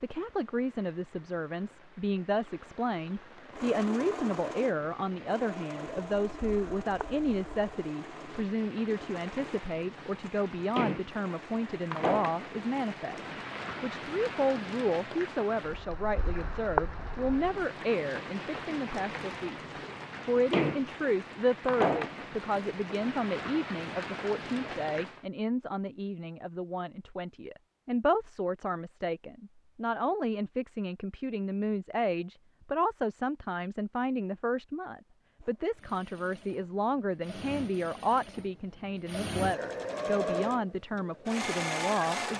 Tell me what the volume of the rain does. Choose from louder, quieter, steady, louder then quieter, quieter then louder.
louder.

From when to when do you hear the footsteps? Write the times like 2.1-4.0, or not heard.
not heard.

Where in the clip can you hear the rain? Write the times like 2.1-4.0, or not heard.
0.0-25.2.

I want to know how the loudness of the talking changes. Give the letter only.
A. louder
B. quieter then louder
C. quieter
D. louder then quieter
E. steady
E.